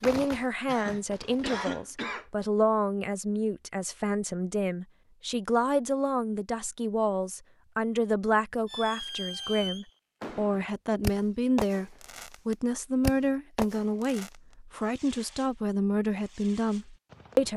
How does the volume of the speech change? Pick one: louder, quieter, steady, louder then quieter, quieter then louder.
steady.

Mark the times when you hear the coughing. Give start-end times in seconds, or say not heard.
0.7-2.2.